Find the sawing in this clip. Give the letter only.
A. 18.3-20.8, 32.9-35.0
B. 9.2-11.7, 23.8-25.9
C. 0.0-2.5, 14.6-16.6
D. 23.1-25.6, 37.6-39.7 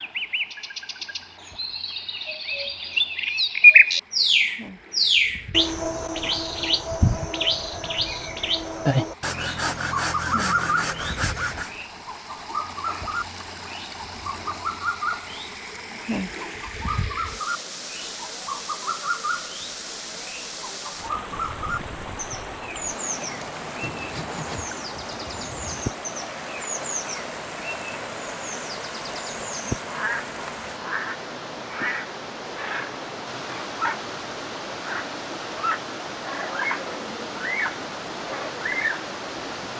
B.